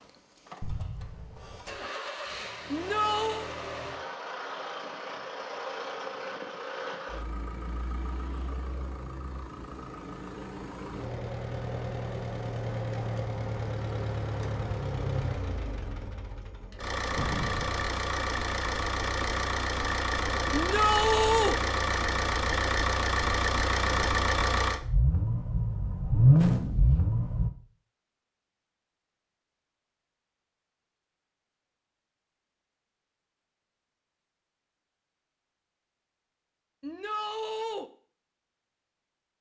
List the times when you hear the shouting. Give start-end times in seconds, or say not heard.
2.7-3.5, 20.5-21.6, 36.8-37.9.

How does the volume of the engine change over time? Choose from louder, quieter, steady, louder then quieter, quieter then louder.
louder.